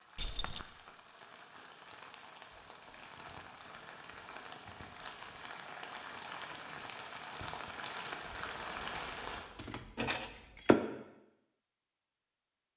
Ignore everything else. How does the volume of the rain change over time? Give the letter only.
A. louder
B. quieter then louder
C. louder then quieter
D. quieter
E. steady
A.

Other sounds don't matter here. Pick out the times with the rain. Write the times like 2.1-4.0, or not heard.
0.0-9.4.